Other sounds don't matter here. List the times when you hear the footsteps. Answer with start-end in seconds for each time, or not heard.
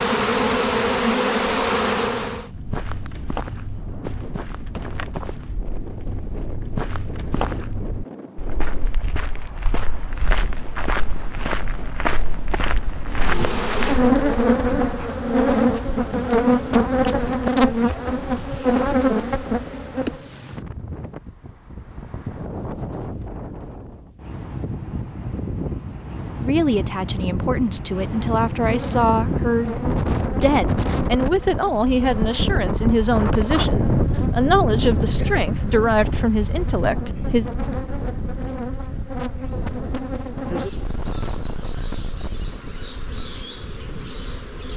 2.5-14.4.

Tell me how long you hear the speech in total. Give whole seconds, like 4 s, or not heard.
11 s.